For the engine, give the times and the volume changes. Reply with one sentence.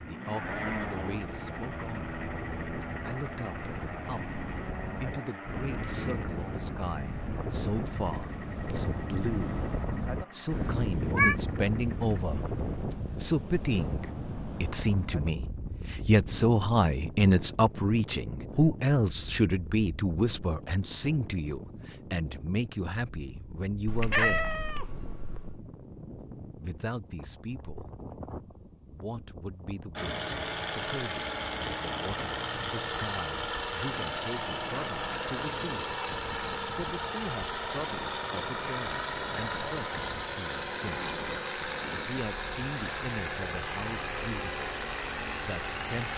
The engine can be heard from 0.0 to 12.2 s, getting quieter; and from 29.9 to 46.1 s, at a steady volume.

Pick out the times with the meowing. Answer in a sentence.
You can hear the meowing from 10.5 to 11.3 s and from 23.9 to 25.6 s.